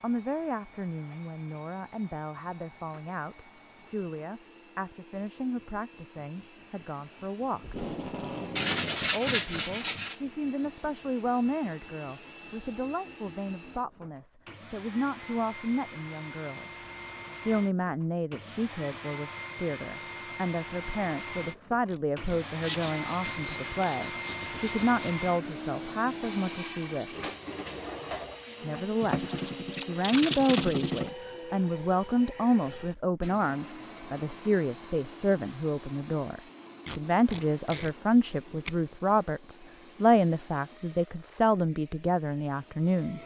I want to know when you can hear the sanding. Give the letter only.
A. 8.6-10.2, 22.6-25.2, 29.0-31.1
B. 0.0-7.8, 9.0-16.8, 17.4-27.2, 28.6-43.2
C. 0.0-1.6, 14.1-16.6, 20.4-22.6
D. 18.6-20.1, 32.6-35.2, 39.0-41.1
A.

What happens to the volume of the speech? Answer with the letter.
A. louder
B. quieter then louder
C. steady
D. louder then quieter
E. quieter
A.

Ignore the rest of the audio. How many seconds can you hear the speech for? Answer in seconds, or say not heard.
40 s.